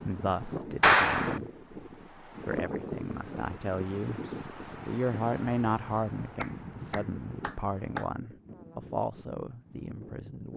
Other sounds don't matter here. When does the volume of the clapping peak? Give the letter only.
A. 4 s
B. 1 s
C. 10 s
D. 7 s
B.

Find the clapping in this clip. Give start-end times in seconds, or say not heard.
0.8-1.4, 6.4-8.1.